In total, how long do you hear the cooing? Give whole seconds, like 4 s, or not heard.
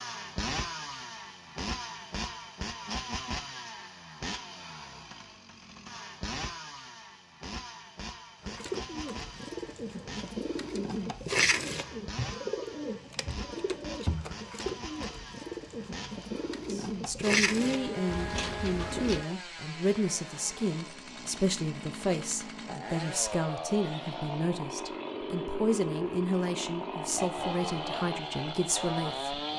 11 s.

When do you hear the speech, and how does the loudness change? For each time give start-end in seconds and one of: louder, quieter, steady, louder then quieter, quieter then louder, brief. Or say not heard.
16.7-29.5 steady.